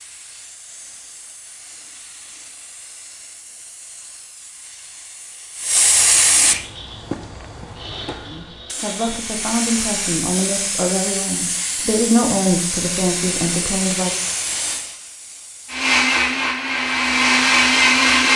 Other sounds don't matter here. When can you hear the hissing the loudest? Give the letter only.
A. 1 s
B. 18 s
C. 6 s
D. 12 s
C.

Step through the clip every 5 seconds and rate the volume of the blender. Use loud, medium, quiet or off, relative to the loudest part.
off, quiet, off, loud.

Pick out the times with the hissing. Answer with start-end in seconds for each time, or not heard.
0.0-15.8.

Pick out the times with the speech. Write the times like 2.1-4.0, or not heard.
8.2-14.2.